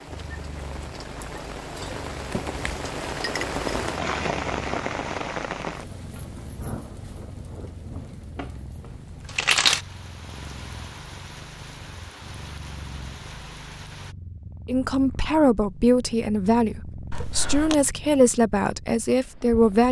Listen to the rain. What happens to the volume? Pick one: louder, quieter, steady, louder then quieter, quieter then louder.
louder then quieter.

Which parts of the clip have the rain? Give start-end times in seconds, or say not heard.
0.0-14.2.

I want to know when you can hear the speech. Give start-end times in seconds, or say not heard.
14.7-19.8.